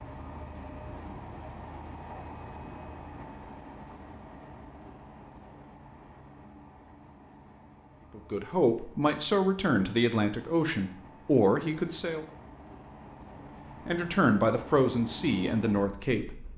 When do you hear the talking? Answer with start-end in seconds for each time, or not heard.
8.2-12.2, 13.8-16.4.